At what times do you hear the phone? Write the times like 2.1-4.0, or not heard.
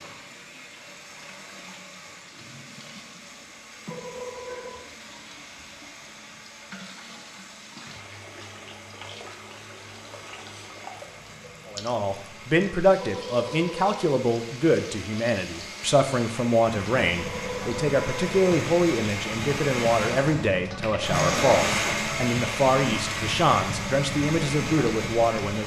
3.9-4.9, 12.9-14.0, 17.1-18.4.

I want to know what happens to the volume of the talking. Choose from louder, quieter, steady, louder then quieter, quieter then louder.
steady.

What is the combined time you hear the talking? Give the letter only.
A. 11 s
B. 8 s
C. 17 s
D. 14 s
D.